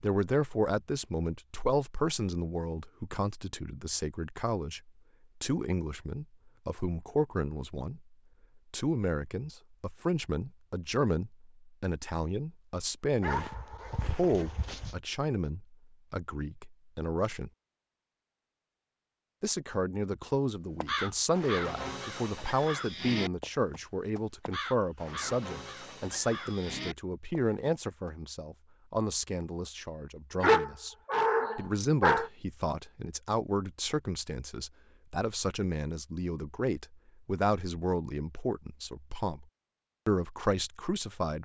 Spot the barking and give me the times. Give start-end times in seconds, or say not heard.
13.2-14.9, 30.4-32.3.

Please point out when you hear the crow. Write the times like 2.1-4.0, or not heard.
20.8-28.1.